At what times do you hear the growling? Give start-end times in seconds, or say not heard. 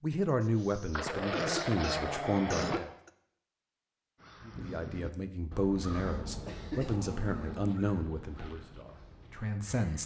0.9-2.8, 6.1-7.8.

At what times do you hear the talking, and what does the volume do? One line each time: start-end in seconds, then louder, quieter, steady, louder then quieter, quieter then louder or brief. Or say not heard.
0.0-2.9 brief
4.5-10.0 quieter.